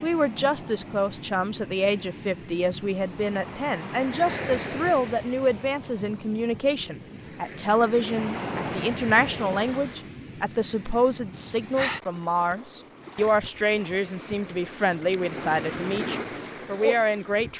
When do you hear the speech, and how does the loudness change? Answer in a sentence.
You can hear the speech from 0.0 to 17.5 s, at a steady volume.